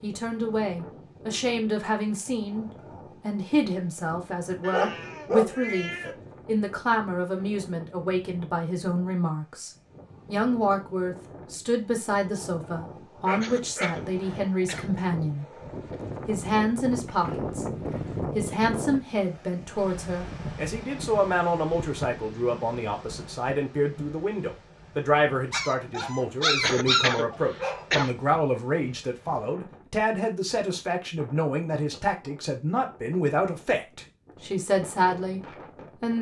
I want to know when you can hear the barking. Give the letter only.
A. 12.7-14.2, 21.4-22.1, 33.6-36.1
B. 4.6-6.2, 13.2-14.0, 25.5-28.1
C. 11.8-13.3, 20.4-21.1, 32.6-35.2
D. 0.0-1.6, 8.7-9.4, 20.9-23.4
B.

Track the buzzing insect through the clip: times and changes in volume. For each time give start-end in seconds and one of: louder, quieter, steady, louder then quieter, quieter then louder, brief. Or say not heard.
not heard.